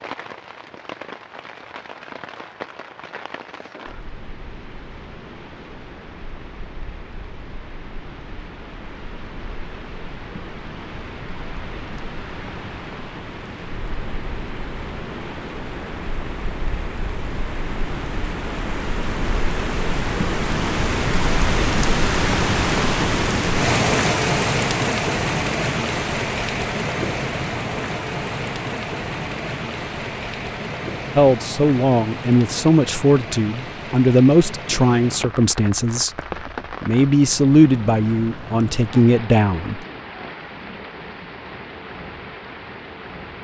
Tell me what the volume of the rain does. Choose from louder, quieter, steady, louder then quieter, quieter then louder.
louder then quieter.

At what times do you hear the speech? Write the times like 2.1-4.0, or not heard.
31.1-36.1, 36.8-39.9.